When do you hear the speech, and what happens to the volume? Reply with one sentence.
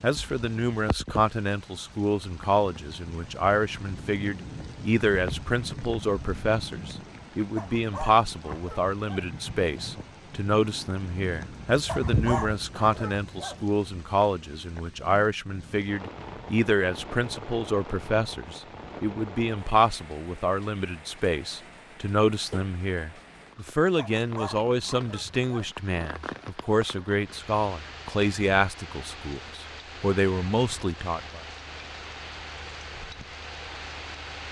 The speech can be heard from 0.0 to 31.4 s, at a steady volume.